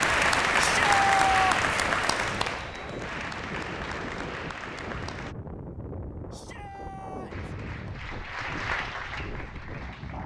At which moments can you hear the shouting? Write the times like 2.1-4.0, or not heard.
0.6-1.6, 6.3-7.5.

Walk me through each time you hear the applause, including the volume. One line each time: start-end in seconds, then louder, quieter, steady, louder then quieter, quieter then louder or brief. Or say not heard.
0.0-5.3 quieter
7.3-10.2 brief.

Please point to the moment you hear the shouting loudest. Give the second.
1 s.